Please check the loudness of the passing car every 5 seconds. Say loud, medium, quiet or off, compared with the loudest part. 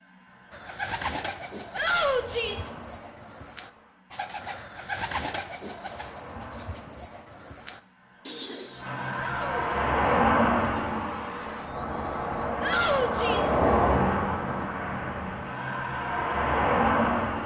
quiet, medium, loud, loud.